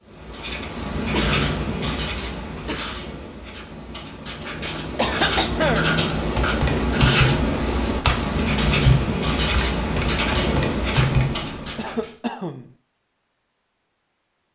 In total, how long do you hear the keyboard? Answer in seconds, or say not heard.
5 s.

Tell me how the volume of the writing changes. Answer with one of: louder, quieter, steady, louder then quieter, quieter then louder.
quieter then louder.